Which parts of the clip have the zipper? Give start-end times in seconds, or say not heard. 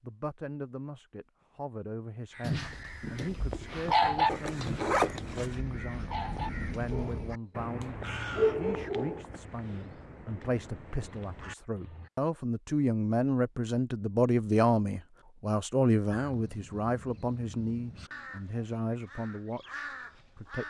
4.2-5.5.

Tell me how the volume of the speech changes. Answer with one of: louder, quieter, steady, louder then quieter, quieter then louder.
louder then quieter.